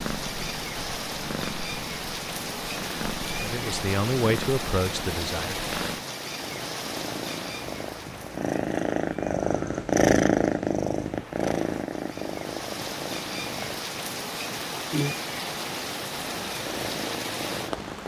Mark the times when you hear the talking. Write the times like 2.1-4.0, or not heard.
3.4-5.7.